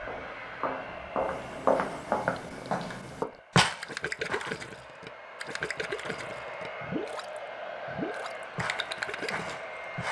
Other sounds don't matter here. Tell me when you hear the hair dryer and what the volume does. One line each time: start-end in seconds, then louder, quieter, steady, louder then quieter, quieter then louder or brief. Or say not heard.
0.0-10.0 quieter then louder.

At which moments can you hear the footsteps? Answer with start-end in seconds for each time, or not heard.
0.0-4.7, 8.6-10.0.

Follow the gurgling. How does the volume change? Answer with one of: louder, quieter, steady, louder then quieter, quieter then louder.
steady.